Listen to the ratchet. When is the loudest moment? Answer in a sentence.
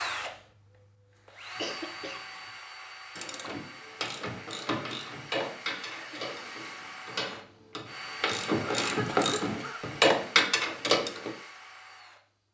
The volume of the ratchet peaks at 10 seconds.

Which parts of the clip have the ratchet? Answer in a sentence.
The ratchet can be heard from 3.1 to 11.3 s.